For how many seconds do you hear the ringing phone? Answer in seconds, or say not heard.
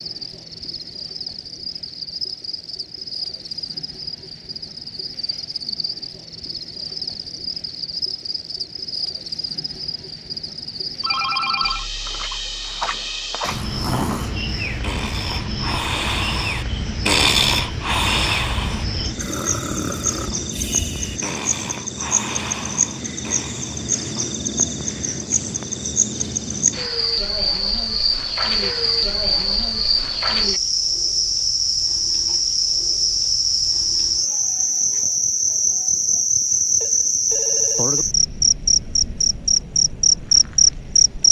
2 s.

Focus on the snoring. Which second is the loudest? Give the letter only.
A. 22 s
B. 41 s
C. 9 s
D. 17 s
D.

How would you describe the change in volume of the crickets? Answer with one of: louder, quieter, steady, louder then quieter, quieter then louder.
louder.